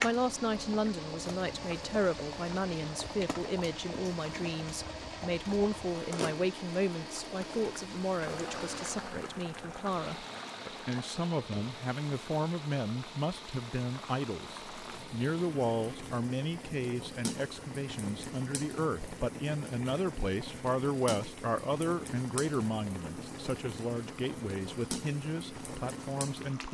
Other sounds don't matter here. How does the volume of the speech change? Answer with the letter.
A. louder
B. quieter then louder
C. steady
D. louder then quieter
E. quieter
C.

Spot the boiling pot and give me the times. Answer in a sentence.
You can hear the boiling pot from 0.0 to 26.7 s.